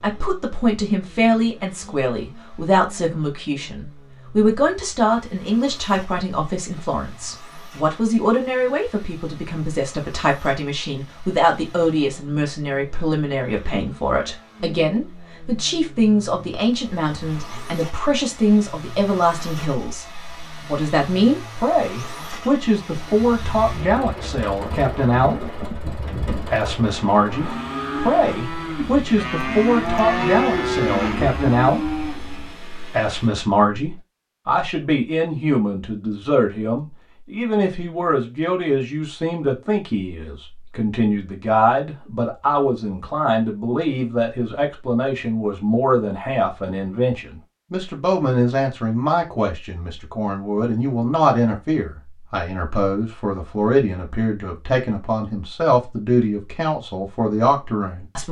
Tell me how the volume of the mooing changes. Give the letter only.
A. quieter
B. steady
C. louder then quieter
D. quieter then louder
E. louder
E.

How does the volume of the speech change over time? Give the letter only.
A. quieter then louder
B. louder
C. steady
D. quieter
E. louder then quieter
C.